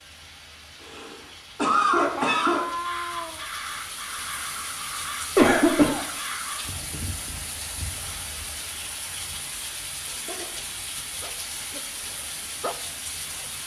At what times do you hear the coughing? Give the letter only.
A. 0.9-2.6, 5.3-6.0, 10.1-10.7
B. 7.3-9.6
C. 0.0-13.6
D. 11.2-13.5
A.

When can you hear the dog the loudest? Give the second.
13 s.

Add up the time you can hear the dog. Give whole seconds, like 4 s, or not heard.
2 s.